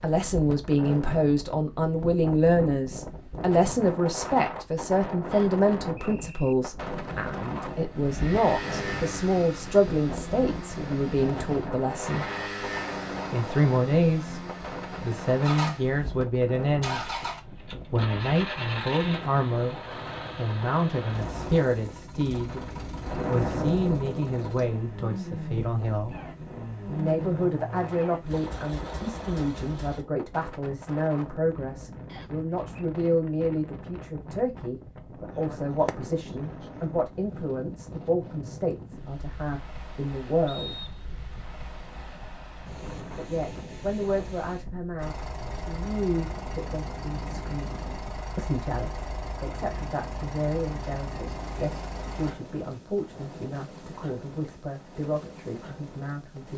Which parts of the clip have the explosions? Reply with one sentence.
The explosions can be heard from 23.1 to 24.4 s.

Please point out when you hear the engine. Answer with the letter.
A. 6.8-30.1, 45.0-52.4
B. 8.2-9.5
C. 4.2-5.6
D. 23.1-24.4
A.